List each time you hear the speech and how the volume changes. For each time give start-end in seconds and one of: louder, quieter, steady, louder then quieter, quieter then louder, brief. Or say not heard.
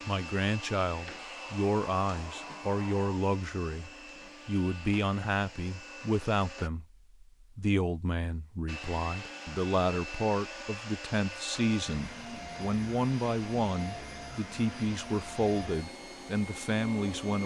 0.1-17.4 steady.